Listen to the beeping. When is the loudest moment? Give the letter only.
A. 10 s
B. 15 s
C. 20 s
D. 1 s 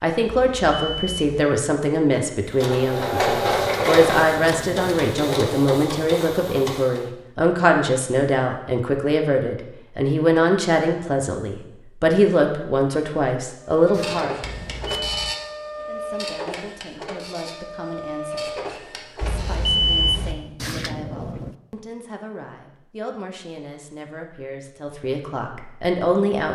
C.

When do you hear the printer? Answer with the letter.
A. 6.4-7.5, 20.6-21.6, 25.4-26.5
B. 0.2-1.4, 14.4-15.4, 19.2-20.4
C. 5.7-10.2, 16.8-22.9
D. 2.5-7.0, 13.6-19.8
D.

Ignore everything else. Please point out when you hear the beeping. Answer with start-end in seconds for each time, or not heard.
0.2-1.4, 14.4-15.4, 19.2-20.4.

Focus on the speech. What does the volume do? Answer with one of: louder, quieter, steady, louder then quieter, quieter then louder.
quieter then louder.